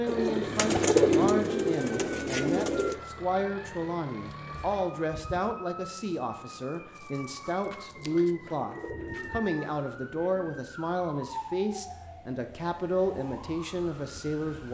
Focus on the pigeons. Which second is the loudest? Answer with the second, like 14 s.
1 s.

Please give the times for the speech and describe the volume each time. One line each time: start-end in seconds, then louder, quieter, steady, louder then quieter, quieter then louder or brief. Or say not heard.
0.0-14.7 steady.